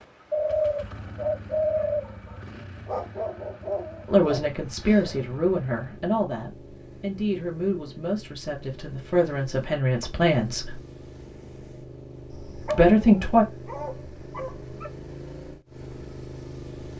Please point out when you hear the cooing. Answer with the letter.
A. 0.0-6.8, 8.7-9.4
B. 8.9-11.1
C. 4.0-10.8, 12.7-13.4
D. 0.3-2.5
D.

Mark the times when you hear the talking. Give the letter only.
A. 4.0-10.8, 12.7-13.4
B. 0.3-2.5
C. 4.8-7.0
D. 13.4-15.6
A.